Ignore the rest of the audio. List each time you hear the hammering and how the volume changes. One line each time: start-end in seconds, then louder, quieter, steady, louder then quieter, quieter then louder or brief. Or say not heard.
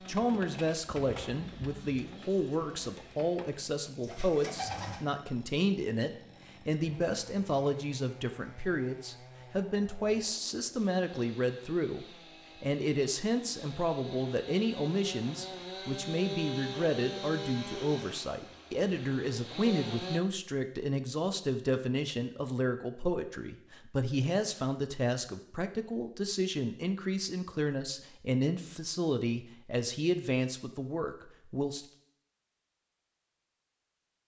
not heard.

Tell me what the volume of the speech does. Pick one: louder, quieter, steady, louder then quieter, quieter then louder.
steady.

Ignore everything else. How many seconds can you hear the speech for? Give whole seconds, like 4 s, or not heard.
32 s.